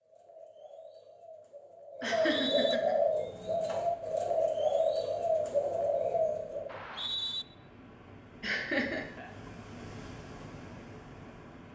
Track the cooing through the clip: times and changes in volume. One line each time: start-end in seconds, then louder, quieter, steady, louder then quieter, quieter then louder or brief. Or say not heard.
0.0-6.8 louder.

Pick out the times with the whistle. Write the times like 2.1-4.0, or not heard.
2.0-2.8, 6.7-7.5.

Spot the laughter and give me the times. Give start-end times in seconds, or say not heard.
2.0-3.0, 8.4-9.1.